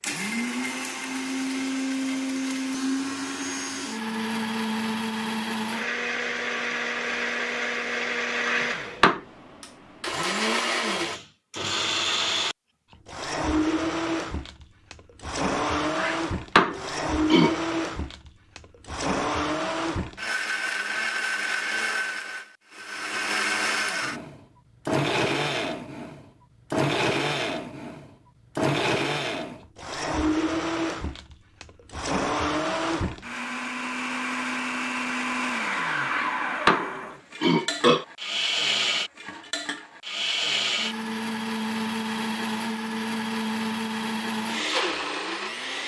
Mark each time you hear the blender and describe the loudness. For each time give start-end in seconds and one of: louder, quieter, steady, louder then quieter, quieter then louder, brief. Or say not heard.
0.0-45.8 steady.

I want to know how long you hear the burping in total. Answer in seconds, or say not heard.
4 s.